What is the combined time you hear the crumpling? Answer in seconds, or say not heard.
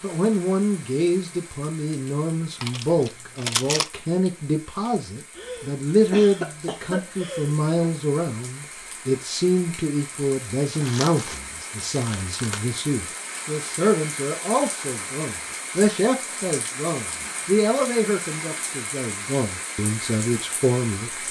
3 s.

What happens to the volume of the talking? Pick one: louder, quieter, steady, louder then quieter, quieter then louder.
steady.